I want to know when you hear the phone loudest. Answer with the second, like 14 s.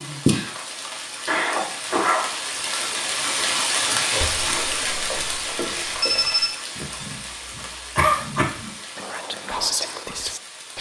6 s.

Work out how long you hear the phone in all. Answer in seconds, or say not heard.
2 s.